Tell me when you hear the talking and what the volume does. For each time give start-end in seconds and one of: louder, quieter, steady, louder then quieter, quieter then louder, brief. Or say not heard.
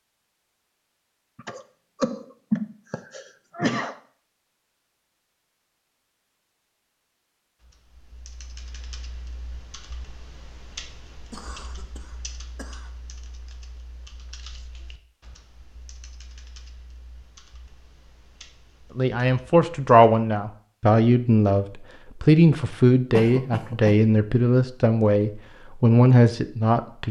18.9-27.0 steady.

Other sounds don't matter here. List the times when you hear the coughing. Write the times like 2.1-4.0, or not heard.
1.4-4.0, 11.3-12.9, 23.1-24.0.